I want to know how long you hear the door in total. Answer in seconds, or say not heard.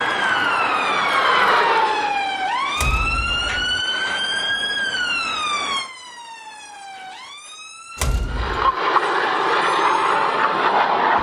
2 s.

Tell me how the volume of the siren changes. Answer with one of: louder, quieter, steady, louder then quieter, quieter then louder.
quieter.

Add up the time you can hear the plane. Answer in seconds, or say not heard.
5 s.